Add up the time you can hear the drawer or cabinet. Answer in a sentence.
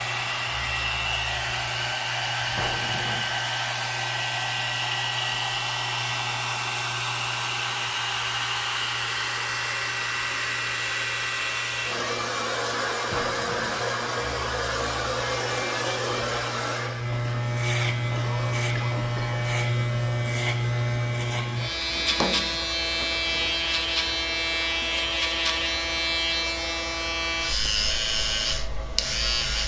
The drawer or cabinet can be heard for 3 seconds in total.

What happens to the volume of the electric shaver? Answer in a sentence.
The volume of the electric shaver goes up.